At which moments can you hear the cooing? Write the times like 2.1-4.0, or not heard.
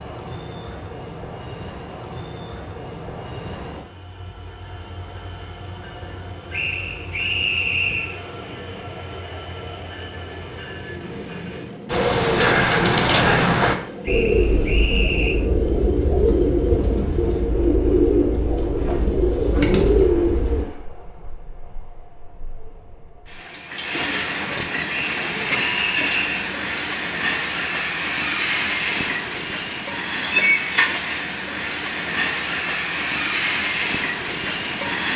11.8-20.6.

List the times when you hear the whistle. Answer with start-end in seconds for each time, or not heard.
6.5-8.2, 14.1-15.4, 24.9-26.4.